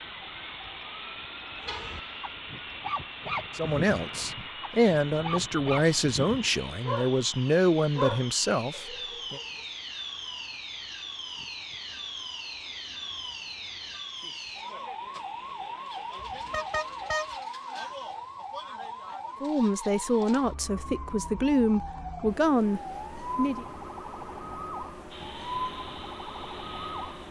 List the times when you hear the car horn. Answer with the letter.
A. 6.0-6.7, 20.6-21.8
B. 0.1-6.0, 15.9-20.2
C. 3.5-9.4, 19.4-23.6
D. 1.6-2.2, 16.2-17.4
D.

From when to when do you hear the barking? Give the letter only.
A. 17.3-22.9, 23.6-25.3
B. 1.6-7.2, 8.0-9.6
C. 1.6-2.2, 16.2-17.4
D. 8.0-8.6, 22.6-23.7
B.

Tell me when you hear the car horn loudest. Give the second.
17 s.